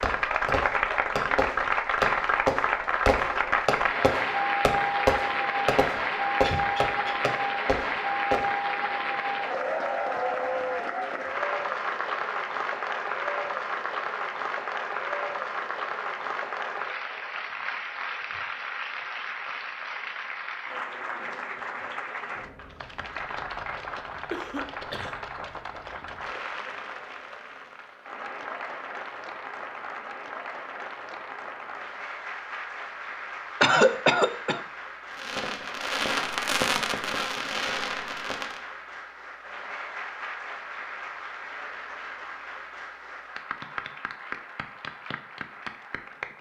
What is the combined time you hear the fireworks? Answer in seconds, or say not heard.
12 s.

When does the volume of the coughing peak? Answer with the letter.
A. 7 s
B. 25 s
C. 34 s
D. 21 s
C.